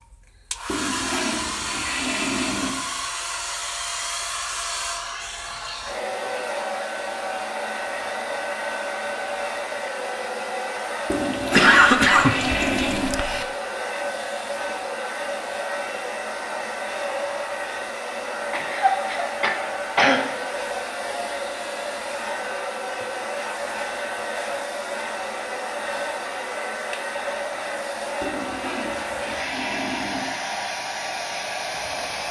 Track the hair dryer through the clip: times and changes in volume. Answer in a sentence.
You can hear the hair dryer from 0.0 to 32.2 s, at a steady volume.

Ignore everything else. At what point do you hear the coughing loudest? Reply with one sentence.
The loudest moment of the coughing is at 12 seconds.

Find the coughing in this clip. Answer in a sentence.
You can hear the coughing from 11.5 to 13.4 s and from 18.5 to 20.2 s.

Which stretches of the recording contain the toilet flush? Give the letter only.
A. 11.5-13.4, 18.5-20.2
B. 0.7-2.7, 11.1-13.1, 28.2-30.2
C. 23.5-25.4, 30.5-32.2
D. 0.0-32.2
B.